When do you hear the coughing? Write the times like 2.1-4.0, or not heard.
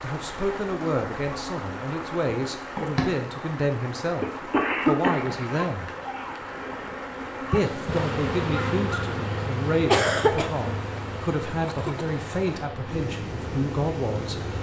4.2-5.4, 9.8-10.5.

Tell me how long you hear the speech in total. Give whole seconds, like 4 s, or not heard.
13 s.